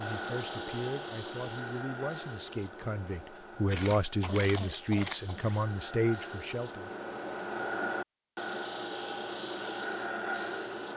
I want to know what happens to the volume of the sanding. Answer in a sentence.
The loudness of the sanding goes down, then up.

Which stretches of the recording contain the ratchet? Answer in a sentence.
You can hear the ratchet from 3.6 to 5.7 s.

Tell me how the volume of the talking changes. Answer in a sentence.
The loudness of the talking goes up.